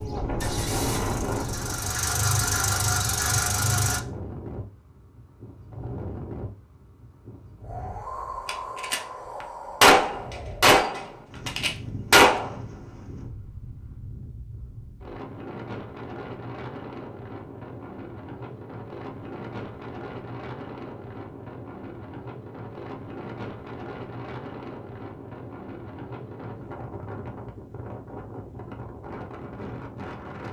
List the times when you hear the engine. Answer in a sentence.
You can hear the engine from 0.1 to 4.0 s.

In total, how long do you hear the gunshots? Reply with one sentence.
The gunshots can be heard for 3 seconds in total.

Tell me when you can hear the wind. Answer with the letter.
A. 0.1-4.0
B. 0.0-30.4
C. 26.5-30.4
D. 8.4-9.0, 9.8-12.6
B.